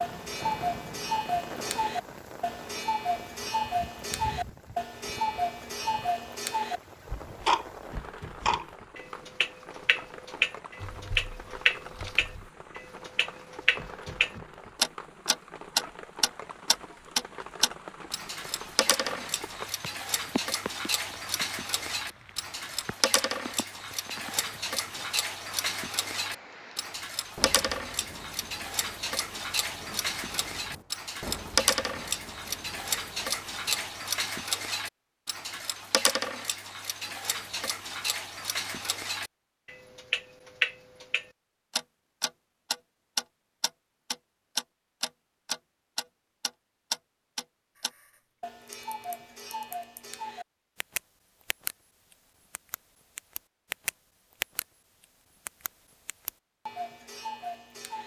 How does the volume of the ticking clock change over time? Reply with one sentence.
The volume of the ticking clock goes down.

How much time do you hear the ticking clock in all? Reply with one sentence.
You can hear the ticking clock for 58 seconds altogether.